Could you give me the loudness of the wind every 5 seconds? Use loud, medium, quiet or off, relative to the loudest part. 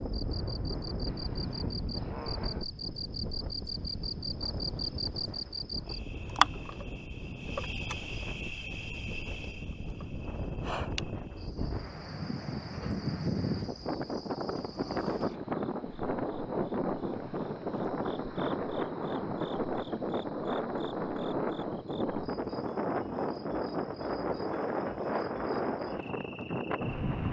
medium, medium, loud, loud, loud, loud.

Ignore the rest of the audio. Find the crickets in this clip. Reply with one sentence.
The crickets can be heard from 0.1 to 27.0 s.